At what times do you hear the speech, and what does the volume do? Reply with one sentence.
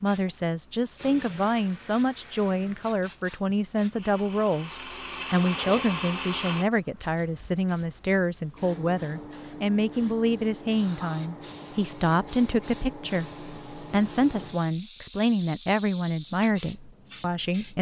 The speech can be heard from 0.0 to 4.7 s, at a steady volume; and from 5.3 to 17.7 s, at a steady volume.